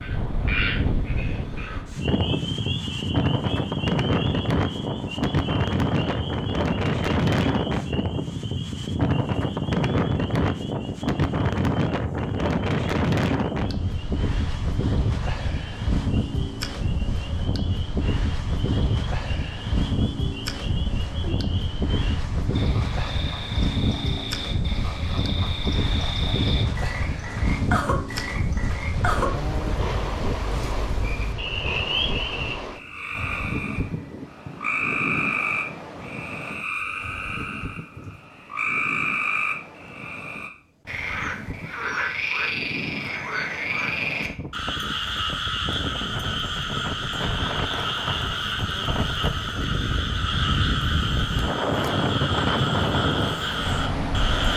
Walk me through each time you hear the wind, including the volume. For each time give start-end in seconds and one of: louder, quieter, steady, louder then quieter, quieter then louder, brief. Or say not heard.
0.0-54.5 quieter then louder.